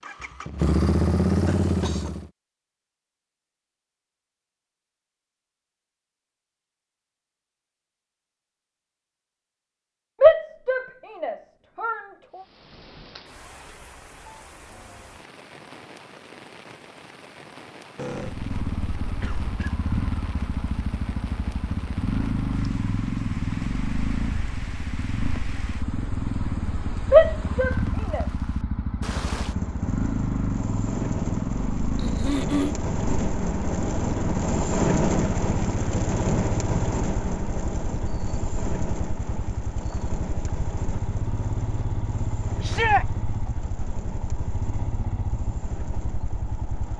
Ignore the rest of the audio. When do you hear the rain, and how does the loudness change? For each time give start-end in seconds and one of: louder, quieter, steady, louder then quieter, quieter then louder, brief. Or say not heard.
12.3-46.9 louder then quieter.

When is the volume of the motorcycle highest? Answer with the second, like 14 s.
1 s.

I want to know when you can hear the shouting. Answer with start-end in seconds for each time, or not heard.
10.2-12.0, 27.1-28.2, 42.6-43.0.